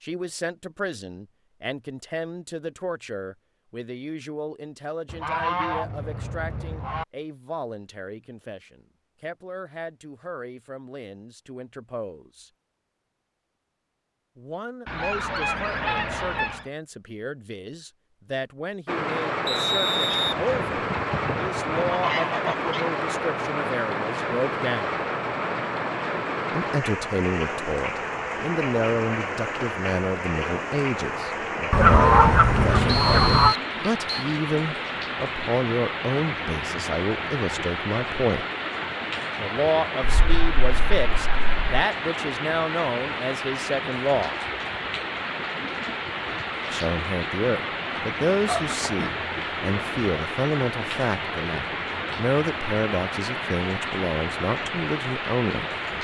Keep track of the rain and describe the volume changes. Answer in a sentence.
The loudness of the rain stays about the same.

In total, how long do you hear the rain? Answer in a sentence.
The rain can be heard for 37 seconds in total.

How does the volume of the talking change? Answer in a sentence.
The loudness of the talking goes up.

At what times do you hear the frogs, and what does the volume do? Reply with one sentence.
The frogs can't be heard in this clip.